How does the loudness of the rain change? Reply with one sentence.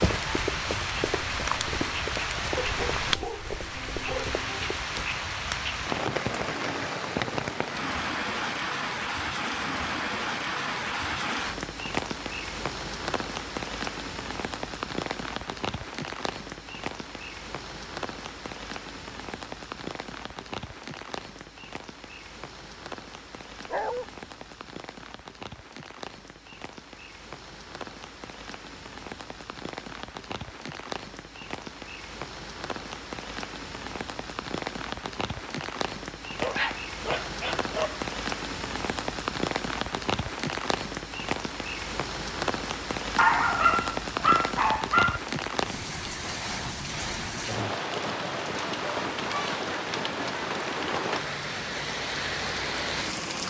The loudness of the rain goes down, then up.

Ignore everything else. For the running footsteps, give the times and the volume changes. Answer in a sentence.
The running footsteps can be heard from 0.0 to 5.0 s, getting quieter.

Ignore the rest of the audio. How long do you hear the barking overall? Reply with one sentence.
You can hear the barking for 6 seconds altogether.